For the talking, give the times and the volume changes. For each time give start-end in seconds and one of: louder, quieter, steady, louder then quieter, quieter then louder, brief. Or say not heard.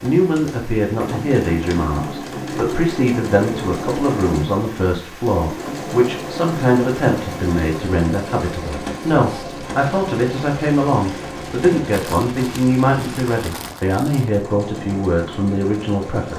0.0-16.3 steady.